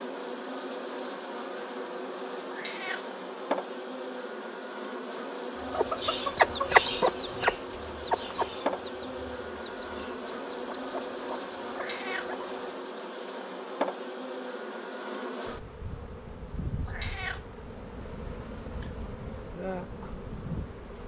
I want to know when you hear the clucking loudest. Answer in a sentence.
The loudest moment of the clucking is at 7 seconds.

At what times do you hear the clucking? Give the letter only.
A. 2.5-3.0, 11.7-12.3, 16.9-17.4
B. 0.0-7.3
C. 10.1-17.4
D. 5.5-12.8
D.